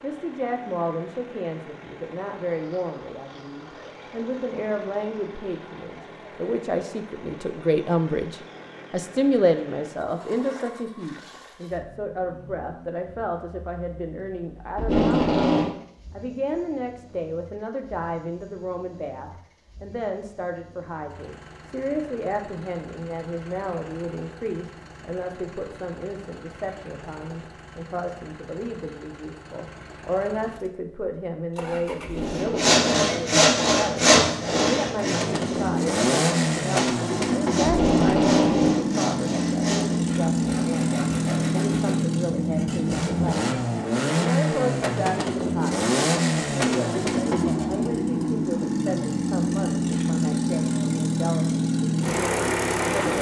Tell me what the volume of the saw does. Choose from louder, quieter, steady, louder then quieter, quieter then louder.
quieter.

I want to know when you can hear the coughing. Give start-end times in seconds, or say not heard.
not heard.